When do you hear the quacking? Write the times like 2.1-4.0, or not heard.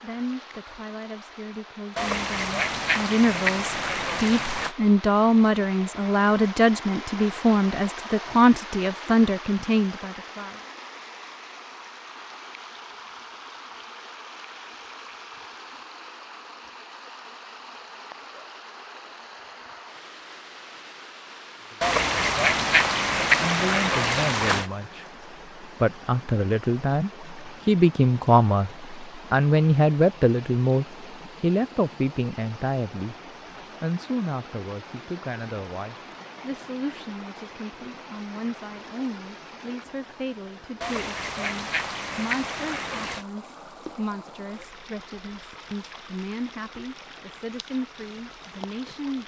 1.9-4.8, 21.8-24.6, 40.8-43.2.